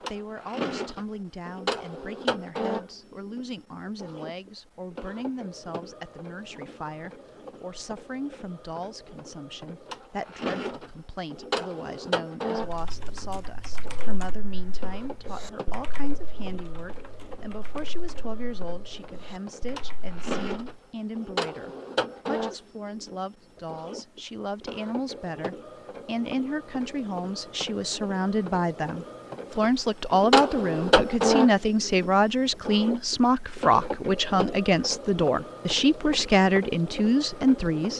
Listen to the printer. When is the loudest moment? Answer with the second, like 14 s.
31 s.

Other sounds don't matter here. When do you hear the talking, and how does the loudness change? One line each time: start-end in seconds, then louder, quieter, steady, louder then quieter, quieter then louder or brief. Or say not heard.
0.0-37.9 louder.